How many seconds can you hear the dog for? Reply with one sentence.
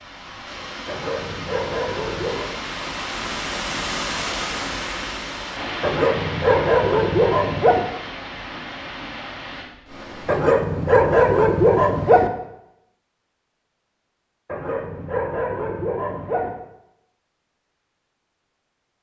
The dog can be heard for 8 seconds in total.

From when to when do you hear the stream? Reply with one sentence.
The stream can be heard from 0.0 to 10.4 s.